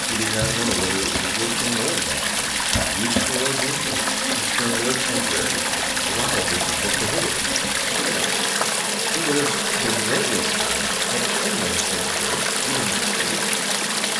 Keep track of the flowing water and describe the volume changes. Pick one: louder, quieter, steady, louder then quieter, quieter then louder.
steady.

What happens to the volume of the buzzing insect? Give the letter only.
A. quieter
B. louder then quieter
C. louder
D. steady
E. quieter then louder
D.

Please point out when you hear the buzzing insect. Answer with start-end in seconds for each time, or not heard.
0.0-14.1.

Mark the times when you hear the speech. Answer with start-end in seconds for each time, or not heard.
0.0-8.4, 9.1-13.4.